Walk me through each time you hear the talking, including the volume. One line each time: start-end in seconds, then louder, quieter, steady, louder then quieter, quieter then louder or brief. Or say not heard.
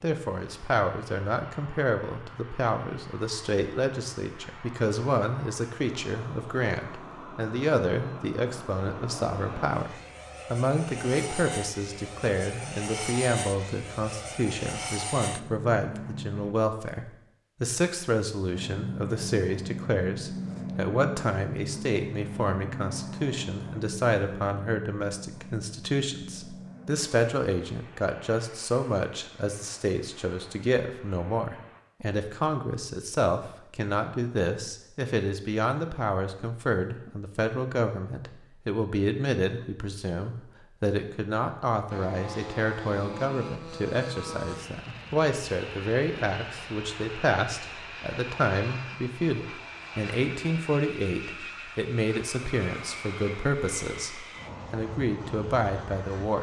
0.0-56.3 steady.